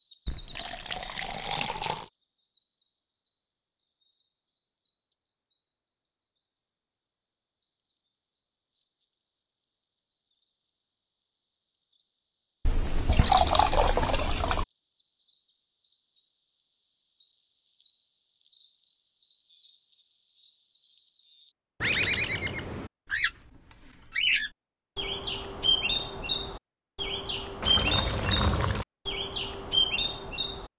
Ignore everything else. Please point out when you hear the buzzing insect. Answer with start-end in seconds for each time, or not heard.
not heard.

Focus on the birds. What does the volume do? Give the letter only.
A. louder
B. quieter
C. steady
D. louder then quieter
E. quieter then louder
A.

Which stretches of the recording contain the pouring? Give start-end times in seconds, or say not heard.
0.2-2.1, 12.7-14.7, 27.6-28.9.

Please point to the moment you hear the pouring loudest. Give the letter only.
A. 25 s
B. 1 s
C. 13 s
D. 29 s
C.